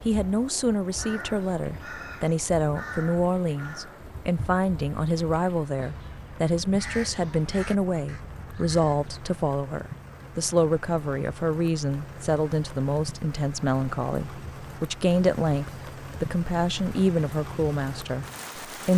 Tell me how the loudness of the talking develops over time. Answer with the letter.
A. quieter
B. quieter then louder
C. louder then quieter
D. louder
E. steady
E.